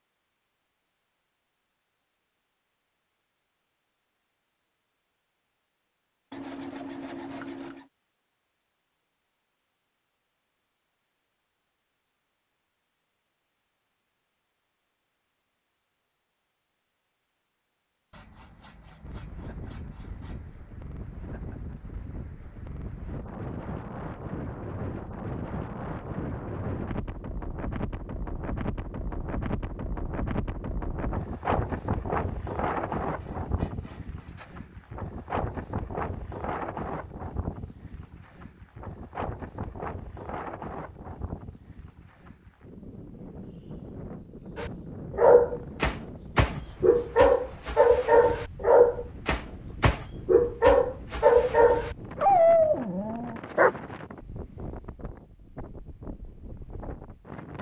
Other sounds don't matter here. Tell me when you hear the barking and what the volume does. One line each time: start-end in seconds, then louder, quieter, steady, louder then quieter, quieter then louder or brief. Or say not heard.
44.5-53.8 steady.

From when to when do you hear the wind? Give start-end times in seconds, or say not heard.
19.0-57.5.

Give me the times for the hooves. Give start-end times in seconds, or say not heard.
not heard.